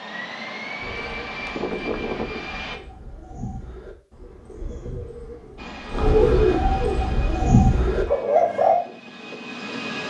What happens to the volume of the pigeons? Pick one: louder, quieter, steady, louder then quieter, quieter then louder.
louder.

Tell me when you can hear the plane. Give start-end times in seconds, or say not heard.
0.0-2.8, 5.5-10.0.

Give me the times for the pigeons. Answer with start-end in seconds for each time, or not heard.
0.8-8.8.